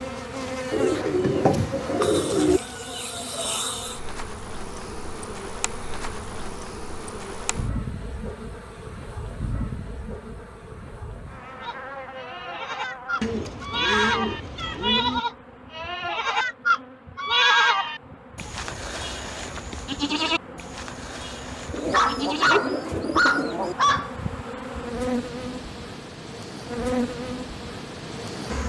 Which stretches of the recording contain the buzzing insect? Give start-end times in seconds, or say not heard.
0.0-28.6.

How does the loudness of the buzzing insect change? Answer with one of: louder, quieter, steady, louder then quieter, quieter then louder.
quieter then louder.